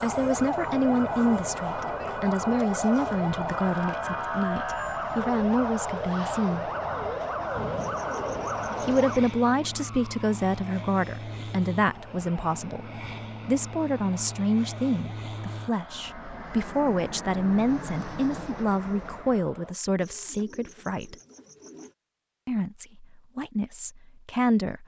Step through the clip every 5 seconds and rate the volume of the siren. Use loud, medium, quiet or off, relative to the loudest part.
loud, loud, quiet, quiet, off.